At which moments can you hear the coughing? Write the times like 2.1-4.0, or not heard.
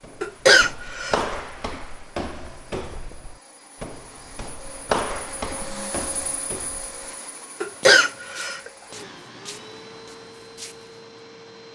0.2-1.3, 7.6-8.7.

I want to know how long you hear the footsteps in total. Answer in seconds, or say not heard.
11 s.